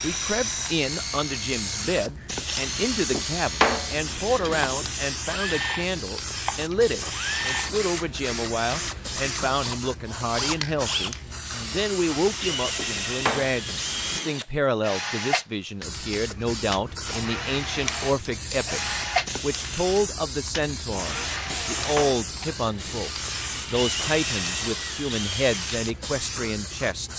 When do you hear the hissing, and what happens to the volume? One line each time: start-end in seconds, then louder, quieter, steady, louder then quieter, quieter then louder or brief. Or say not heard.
0.0-14.2 steady
15.8-27.1 steady.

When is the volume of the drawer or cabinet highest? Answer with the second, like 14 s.
4 s.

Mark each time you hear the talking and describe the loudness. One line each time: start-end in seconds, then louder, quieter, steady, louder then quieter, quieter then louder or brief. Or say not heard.
0.0-27.1 steady.